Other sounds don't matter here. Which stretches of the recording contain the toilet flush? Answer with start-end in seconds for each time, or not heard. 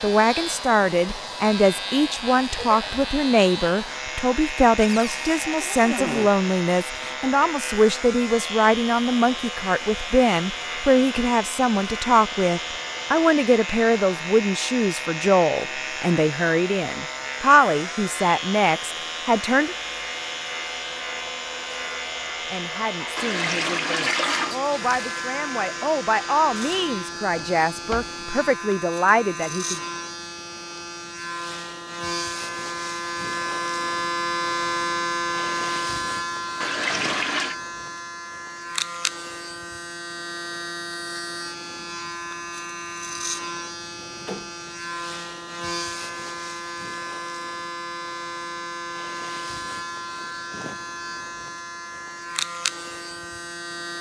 23.1-24.6, 36.6-37.5.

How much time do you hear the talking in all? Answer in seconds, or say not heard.
27 s.